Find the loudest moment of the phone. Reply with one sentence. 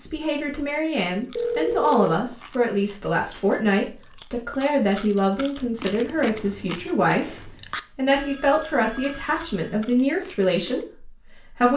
The loudest moment of the phone is at 2 seconds.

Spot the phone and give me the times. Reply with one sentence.
You can hear the phone from 1.4 to 2.2 s and from 8.1 to 9.7 s.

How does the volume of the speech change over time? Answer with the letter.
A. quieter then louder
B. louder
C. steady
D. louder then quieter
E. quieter
C.